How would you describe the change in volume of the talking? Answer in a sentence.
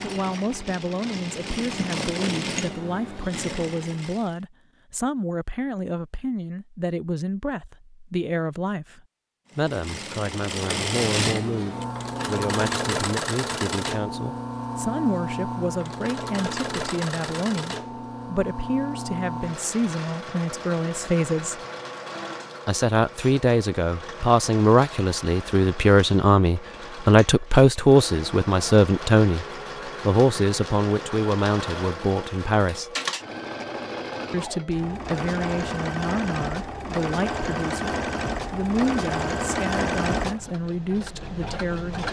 The volume of the talking goes up, then down.